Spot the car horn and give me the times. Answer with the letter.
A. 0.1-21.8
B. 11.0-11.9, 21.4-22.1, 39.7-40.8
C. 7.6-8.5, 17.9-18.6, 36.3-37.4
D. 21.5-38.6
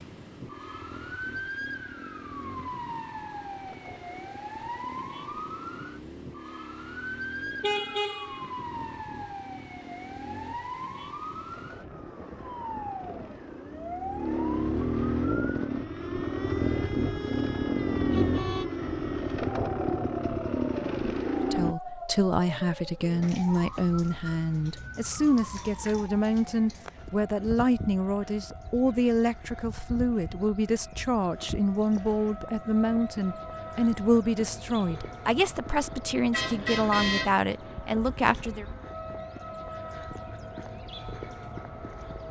C.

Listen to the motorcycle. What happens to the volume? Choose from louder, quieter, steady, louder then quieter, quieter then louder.
louder.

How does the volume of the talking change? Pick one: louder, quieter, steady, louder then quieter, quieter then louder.
steady.